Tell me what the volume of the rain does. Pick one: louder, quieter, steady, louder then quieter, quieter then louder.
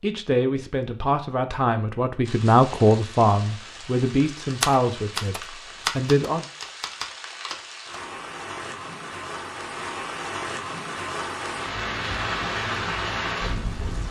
louder.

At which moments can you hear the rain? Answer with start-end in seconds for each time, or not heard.
2.2-14.0.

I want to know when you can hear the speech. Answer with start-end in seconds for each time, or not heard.
0.0-6.5.